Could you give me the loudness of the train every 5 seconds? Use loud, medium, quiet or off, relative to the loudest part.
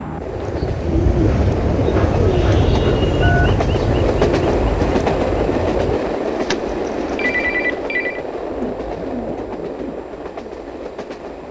loud, loud, medium.